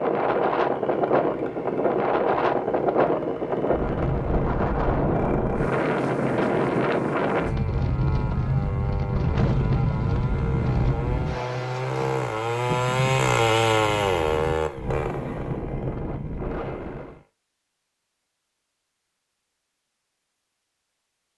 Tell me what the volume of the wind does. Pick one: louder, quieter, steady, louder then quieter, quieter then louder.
quieter.